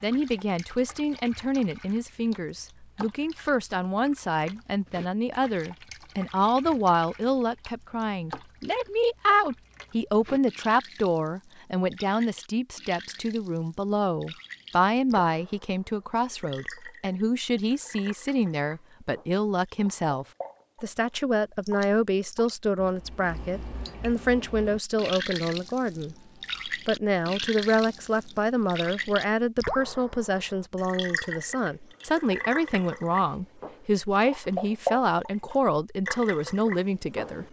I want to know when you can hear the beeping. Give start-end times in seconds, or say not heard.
not heard.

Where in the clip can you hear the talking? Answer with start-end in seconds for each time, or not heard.
0.0-37.4.